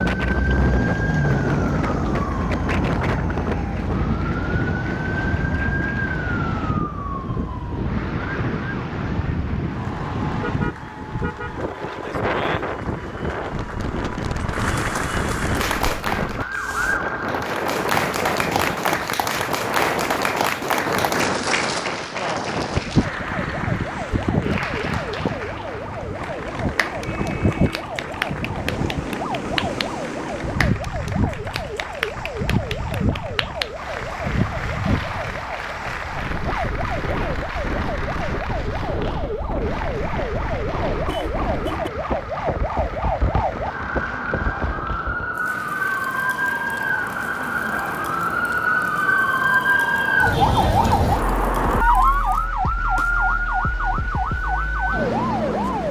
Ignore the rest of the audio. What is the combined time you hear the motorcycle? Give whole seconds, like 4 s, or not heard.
not heard.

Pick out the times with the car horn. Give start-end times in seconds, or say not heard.
10.4-11.6, 26.9-27.9, 41.0-41.9.